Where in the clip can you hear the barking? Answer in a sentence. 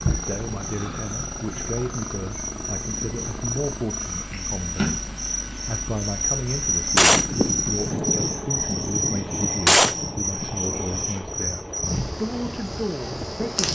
The barking can't be heard in this clip.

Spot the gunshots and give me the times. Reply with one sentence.
You can hear the gunshots from 6.9 to 11.1 s.